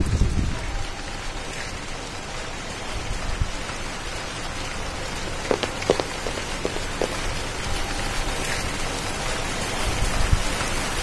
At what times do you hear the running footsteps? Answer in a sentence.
You can hear the running footsteps from 5.2 to 7.2 s.